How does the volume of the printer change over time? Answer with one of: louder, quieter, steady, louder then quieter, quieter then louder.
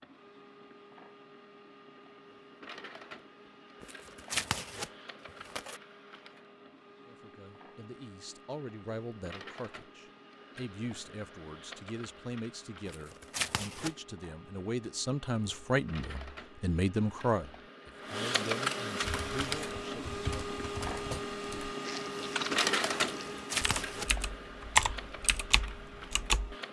louder.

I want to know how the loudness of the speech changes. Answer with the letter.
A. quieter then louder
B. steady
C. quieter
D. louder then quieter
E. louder
D.